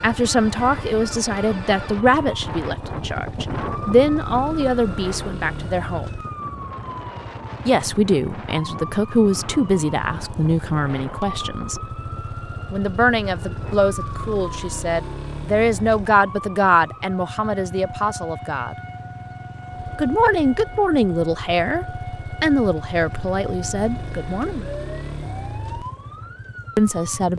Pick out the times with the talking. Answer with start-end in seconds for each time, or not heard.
0.0-6.1, 7.7-11.8, 12.7-18.8, 19.9-24.6, 26.8-27.3.